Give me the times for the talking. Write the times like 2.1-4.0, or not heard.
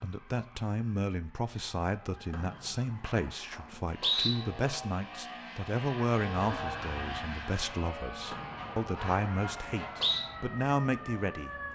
0.0-11.7.